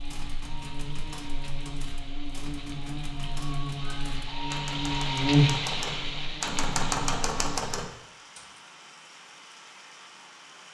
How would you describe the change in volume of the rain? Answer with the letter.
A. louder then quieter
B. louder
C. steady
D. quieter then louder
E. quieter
A.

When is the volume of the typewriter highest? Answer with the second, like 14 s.
7 s.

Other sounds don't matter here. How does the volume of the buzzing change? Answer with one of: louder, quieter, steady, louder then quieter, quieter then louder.
louder then quieter.